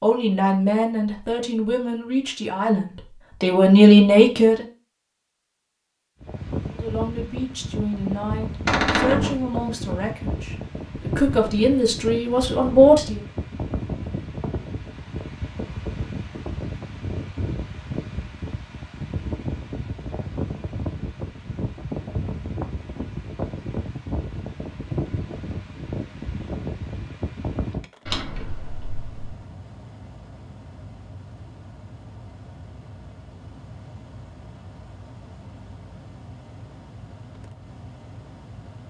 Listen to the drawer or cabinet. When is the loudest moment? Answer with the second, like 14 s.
9 s.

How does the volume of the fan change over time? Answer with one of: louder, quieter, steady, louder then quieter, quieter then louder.
quieter.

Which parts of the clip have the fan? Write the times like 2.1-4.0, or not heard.
6.2-38.8.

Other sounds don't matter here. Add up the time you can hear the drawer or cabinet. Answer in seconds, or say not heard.
2 s.